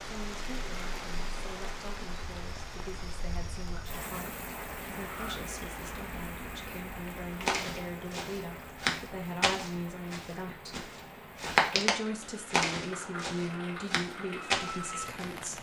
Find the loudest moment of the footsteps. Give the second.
12 s.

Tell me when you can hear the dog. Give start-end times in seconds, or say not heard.
not heard.